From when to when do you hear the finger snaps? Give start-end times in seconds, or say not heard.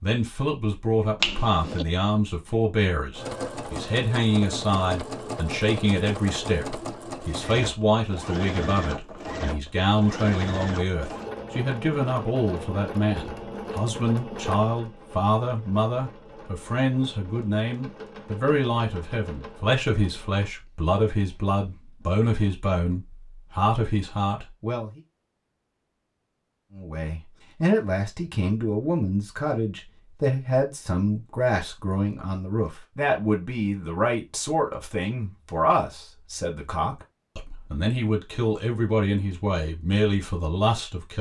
1.2-1.9.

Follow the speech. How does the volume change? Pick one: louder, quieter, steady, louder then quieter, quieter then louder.
steady.